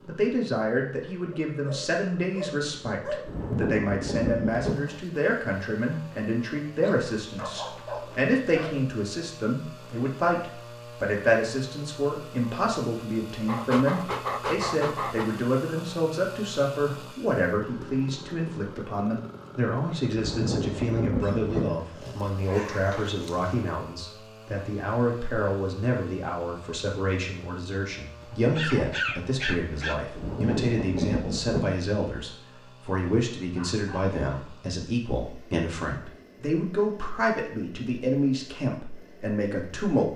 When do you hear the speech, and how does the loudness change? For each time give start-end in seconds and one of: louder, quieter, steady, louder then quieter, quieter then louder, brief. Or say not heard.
0.1-40.1 steady.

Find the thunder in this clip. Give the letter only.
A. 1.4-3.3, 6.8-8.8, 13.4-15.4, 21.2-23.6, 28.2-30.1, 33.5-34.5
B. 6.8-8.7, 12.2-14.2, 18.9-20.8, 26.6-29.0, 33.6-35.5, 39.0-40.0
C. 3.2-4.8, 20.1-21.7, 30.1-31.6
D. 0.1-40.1
C.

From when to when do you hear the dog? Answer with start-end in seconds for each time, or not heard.
1.4-3.3, 6.8-8.8, 13.4-15.4, 21.2-23.6, 28.2-30.1, 33.5-34.5.